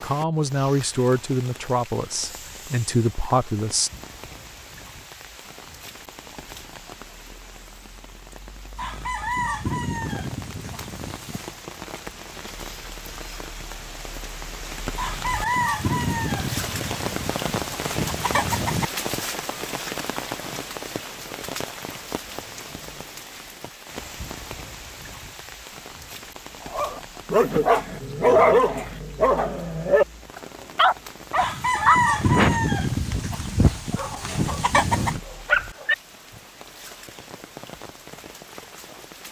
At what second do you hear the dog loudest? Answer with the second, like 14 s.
28 s.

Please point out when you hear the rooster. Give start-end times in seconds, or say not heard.
8.8-11.6, 14.9-18.9, 31.4-35.2.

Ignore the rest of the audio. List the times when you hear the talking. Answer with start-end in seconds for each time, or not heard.
0.0-3.9.